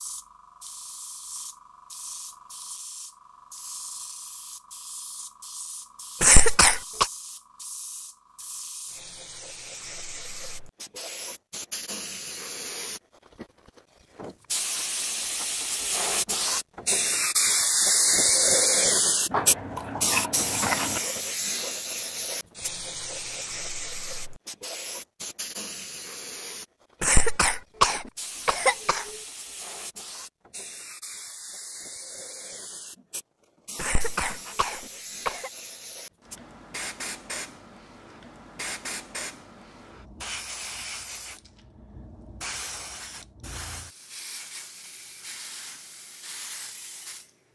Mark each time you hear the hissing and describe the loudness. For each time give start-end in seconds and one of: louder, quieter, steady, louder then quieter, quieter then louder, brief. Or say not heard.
0.0-47.5 louder then quieter.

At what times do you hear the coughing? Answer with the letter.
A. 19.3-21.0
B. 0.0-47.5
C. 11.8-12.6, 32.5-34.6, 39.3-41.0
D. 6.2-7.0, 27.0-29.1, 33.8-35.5
D.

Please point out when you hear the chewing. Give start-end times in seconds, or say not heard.
19.3-21.0.